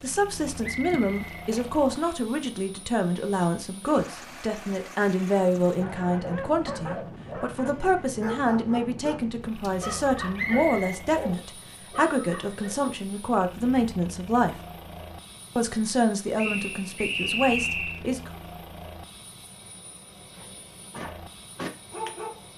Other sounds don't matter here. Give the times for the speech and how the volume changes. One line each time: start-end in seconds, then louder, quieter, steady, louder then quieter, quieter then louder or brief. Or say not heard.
0.0-14.6 steady
15.6-18.3 brief.